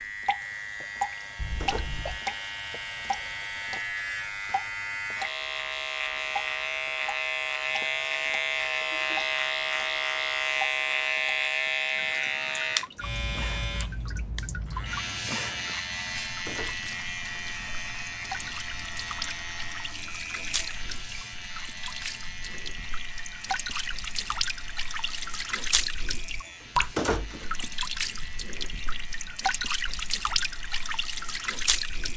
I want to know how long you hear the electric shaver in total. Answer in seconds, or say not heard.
32 s.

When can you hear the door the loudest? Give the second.
27 s.